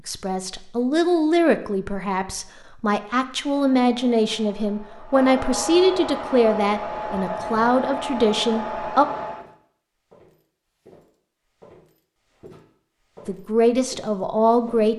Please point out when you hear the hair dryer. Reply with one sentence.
The hair dryer can be heard from 3.4 to 9.5 s.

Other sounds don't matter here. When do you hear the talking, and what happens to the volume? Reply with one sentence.
The talking can be heard from 0.1 to 9.1 s, at a steady volume; and briefly from 13.2 to 14.9 s.